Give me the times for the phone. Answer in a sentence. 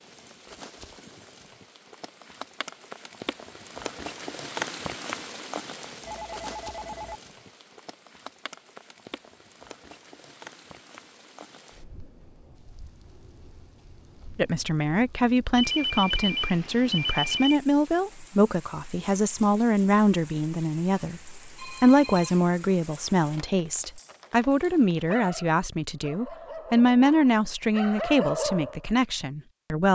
You can hear the phone from 6.0 to 7.2 s, from 15.6 to 17.4 s and from 21.6 to 22.4 s.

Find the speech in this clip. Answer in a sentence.
You can hear the speech from 14.3 to 29.9 s.